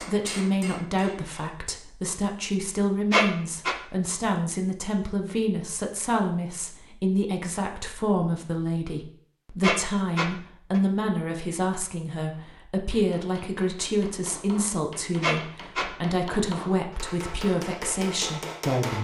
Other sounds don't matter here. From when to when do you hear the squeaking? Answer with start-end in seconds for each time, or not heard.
3.1-3.8, 9.6-10.8, 15.2-15.9.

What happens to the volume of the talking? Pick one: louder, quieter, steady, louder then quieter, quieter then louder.
steady.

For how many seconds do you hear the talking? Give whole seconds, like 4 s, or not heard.
19 s.